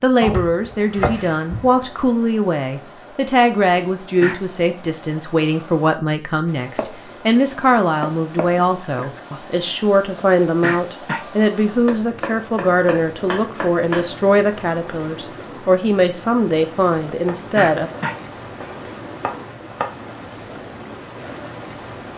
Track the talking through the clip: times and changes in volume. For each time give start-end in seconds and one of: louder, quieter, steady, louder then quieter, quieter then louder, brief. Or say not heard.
0.0-17.9 steady.